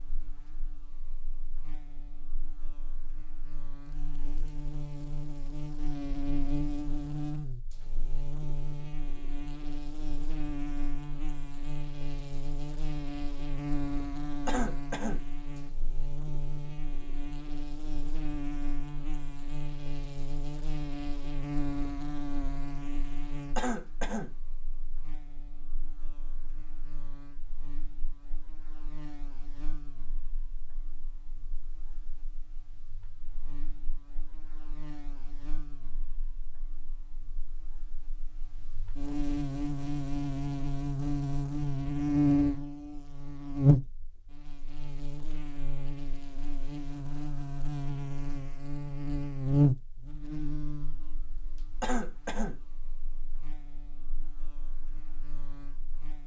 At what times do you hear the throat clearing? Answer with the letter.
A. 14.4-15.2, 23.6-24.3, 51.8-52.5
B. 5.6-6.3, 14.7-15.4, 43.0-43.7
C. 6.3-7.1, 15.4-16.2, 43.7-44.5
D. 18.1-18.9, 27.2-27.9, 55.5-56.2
A.